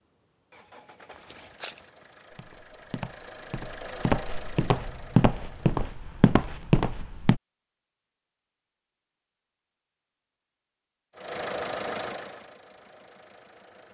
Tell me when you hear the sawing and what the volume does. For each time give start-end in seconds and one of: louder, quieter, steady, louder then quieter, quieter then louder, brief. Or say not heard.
not heard.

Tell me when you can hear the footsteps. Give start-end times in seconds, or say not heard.
1.1-7.4.